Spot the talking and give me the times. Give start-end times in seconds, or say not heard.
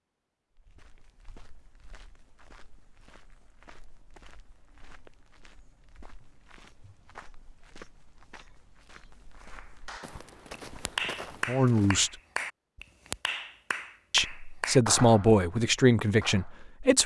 11.4-12.1, 14.1-17.0.